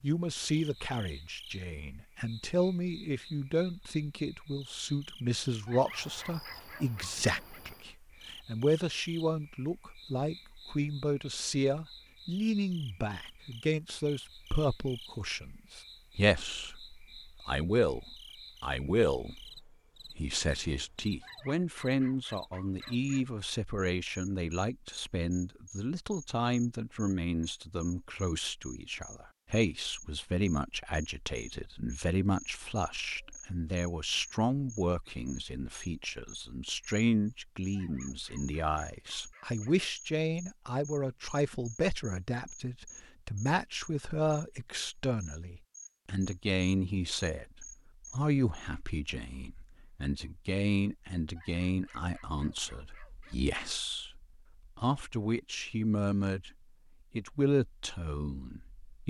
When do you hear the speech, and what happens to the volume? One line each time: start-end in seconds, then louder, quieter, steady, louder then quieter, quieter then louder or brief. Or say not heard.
0.0-56.5 steady
57.1-59.0 brief.